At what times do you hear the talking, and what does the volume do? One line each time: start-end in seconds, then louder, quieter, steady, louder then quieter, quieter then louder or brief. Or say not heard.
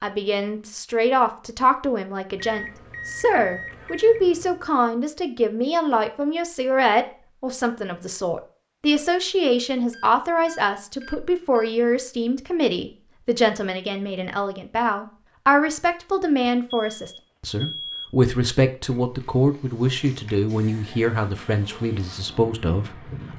0.0-23.3 steady.